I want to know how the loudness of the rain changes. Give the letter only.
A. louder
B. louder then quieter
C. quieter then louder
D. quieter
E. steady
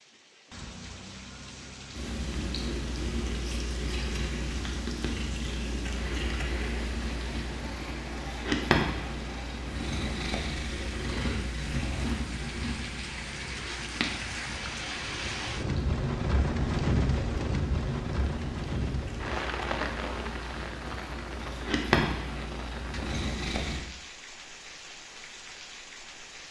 B.